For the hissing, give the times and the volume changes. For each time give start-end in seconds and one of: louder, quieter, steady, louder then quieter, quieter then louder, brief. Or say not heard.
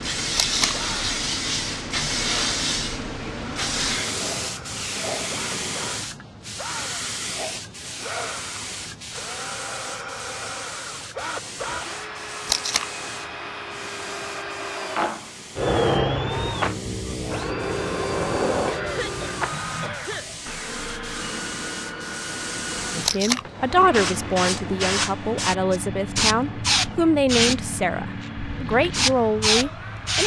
0.0-30.2 quieter then louder.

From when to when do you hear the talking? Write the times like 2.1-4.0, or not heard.
23.0-30.2.